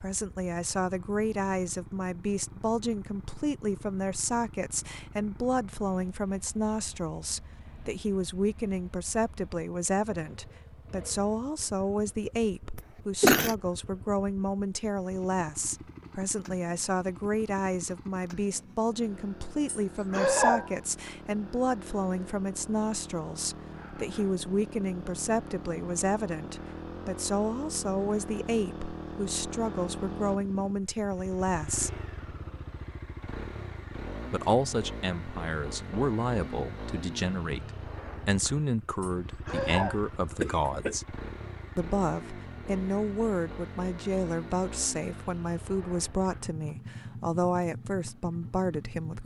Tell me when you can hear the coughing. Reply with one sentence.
The coughing can be heard from 12.8 to 13.6 s, from 19.6 to 20.8 s and from 39.0 to 41.0 s.